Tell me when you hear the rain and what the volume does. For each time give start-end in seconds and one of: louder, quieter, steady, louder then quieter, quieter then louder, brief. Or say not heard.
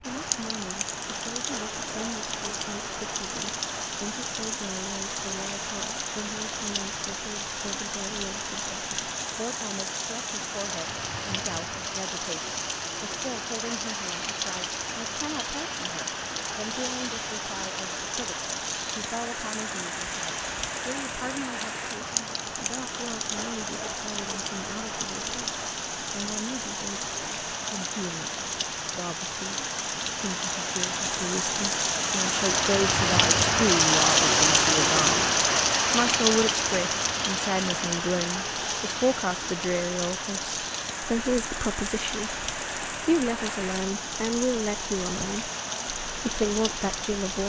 0.0-47.4 louder then quieter.